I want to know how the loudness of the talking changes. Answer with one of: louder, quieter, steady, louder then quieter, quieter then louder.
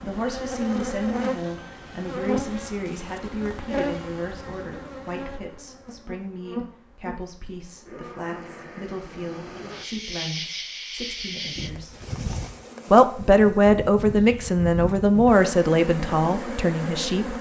quieter then louder.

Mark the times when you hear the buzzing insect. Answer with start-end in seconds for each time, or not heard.
0.0-17.3.